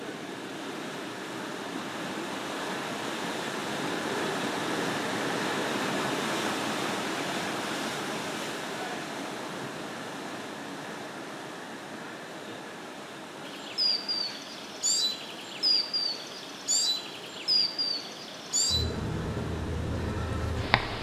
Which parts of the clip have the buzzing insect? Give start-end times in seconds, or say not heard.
13.4-20.9.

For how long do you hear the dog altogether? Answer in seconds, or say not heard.
not heard.